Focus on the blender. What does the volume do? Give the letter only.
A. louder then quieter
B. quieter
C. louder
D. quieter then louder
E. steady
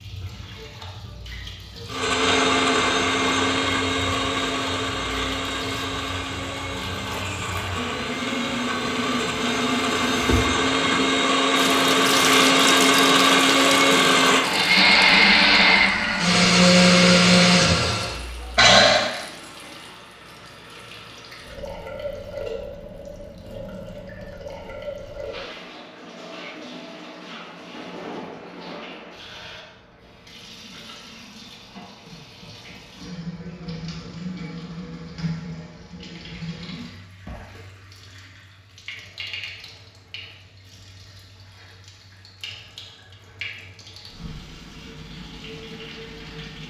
D.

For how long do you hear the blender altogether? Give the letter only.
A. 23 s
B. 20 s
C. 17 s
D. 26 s
C.